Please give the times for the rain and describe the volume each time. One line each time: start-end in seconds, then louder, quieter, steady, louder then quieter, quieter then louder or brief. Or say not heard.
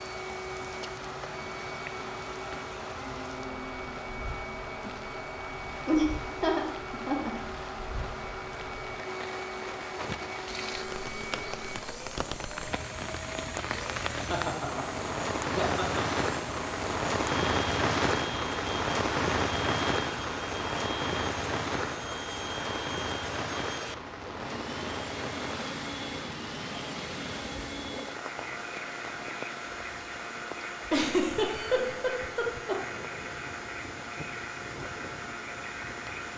0.0-36.3 louder then quieter.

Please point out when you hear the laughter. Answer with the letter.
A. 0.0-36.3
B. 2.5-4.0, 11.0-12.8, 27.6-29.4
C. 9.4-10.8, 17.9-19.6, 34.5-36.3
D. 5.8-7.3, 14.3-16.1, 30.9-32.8
D.